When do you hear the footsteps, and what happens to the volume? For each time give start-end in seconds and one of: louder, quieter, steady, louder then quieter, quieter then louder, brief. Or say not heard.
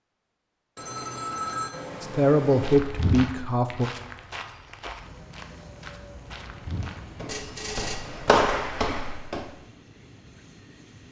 2.6-9.5 quieter then louder.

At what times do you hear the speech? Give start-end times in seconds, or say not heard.
2.0-3.9.